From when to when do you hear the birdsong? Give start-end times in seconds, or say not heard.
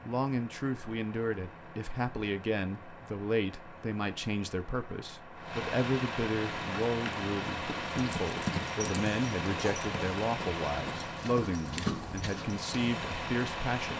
not heard.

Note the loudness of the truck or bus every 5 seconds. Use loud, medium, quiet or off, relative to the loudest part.
quiet, loud, loud.